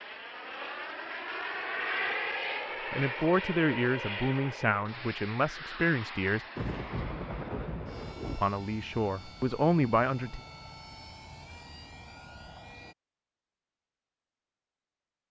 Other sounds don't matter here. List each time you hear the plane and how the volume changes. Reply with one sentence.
You can hear the plane from 0.0 to 12.9 s, getting quieter.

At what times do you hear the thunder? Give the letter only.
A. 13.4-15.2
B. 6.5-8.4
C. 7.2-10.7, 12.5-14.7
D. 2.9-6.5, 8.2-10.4
B.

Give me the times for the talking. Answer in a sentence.
The talking can be heard from 2.9 to 6.5 s and from 8.2 to 10.4 s.